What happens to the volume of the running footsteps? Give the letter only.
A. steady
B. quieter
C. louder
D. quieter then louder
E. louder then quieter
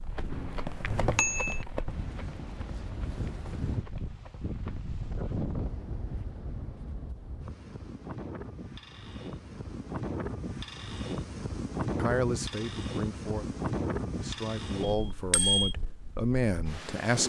B.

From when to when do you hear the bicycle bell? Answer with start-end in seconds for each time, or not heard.
0.2-1.6, 14.8-15.8.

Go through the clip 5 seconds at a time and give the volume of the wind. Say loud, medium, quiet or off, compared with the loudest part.
medium, medium, loud, medium.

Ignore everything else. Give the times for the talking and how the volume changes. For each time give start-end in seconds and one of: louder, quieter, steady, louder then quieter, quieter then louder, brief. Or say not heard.
11.9-17.2 louder.